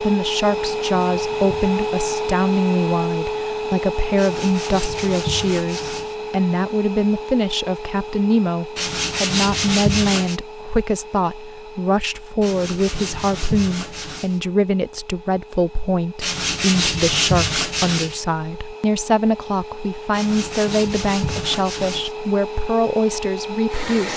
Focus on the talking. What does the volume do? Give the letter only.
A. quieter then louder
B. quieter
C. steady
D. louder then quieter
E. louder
C.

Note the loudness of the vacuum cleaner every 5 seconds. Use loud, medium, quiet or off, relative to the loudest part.
loud, medium, quiet, quiet, medium.